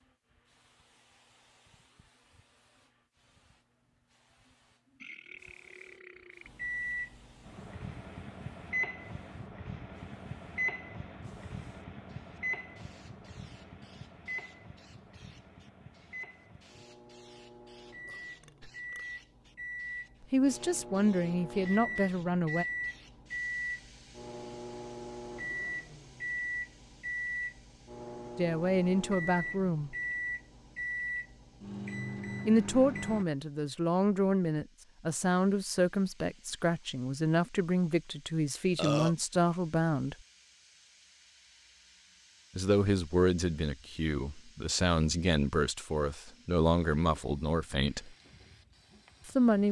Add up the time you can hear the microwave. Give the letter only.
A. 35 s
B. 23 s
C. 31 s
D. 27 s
D.